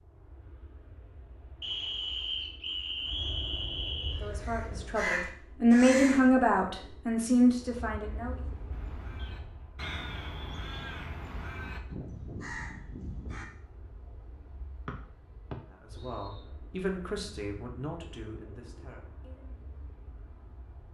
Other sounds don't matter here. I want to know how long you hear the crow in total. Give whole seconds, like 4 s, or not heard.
7 s.